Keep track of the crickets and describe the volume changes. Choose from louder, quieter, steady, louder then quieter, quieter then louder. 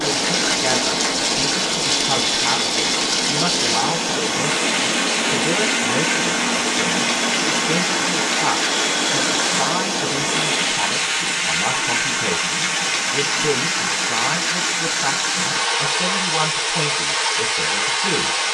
steady.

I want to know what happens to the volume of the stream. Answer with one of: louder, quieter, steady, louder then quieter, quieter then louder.
steady.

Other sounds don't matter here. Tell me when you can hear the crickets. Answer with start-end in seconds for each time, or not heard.
0.0-10.8.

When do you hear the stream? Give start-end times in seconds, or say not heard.
0.0-18.4.